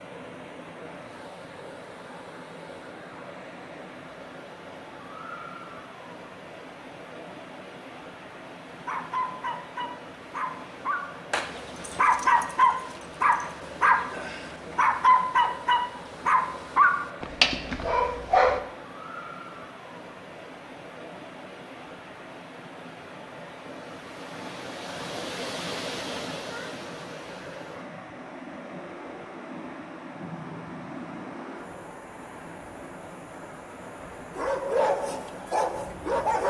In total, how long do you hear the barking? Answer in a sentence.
You can hear the barking for 12 seconds altogether.